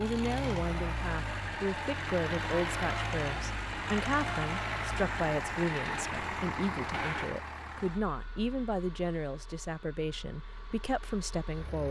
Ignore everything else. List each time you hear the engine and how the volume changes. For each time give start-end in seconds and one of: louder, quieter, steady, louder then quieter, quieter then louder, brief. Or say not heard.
0.0-11.8 quieter.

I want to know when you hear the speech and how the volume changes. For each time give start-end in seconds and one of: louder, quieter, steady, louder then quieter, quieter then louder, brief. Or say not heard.
0.0-11.8 steady.